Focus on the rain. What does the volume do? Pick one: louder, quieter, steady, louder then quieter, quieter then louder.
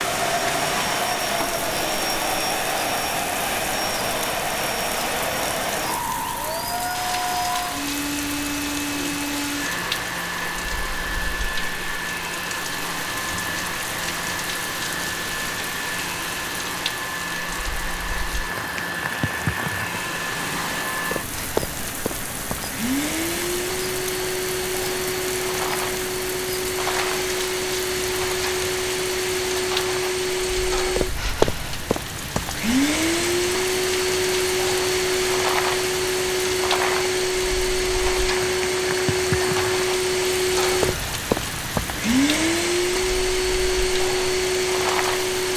steady.